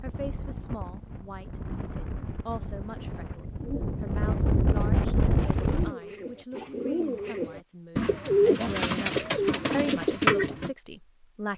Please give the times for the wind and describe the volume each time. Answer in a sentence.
The wind can be heard from 0.0 to 6.0 s, getting louder.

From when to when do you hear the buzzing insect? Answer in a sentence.
You can't hear the buzzing insect here.